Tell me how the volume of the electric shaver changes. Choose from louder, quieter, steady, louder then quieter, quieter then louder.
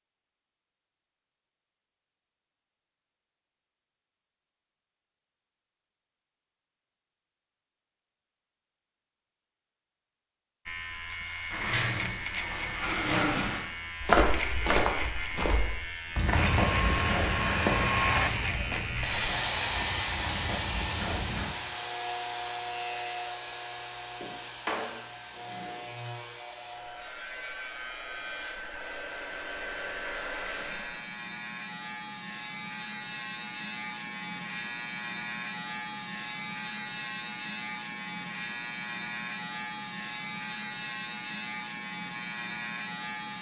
quieter then louder.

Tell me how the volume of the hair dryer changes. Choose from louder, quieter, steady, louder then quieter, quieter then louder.
quieter then louder.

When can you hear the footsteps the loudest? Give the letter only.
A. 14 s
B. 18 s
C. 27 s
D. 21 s
A.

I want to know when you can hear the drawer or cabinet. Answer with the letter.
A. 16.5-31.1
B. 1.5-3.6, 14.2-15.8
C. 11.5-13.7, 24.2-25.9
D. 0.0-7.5
C.